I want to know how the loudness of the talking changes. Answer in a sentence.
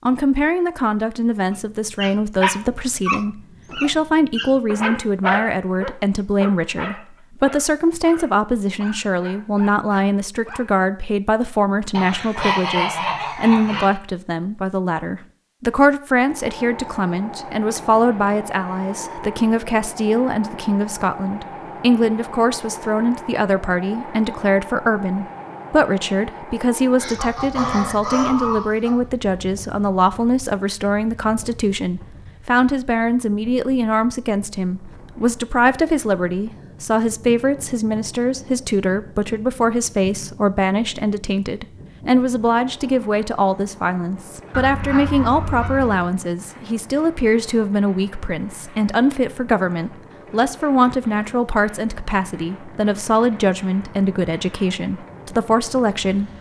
The loudness of the talking stays about the same.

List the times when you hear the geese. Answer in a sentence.
The geese can be heard from 11.9 to 13.9 s, from 26.9 to 28.9 s and from 44.5 to 46.1 s.